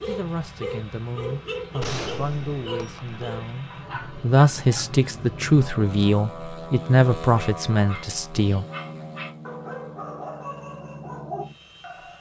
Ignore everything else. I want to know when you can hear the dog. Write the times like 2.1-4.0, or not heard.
0.0-5.0, 7.3-12.1.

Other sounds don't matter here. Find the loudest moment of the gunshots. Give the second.
2 s.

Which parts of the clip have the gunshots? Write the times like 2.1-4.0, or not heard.
1.8-3.2.